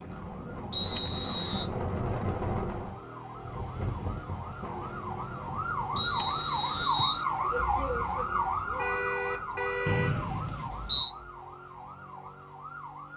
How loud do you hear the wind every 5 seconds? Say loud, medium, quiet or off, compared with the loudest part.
loud, medium, off.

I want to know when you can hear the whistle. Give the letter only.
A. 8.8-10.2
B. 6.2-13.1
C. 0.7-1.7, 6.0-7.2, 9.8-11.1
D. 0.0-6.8
C.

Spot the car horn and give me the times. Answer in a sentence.
You can hear the car horn from 8.8 to 10.2 s.